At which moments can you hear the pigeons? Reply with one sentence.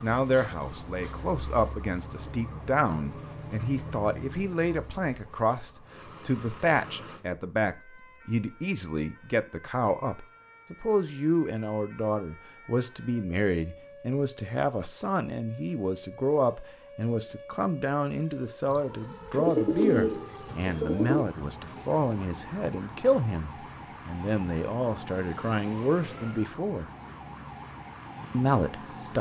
The pigeons can be heard from 19.3 to 21.2 s.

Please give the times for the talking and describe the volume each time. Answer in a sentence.
You can hear the talking from 0.0 to 26.9 s, at a steady volume; and briefly from 28.3 to 29.1 s.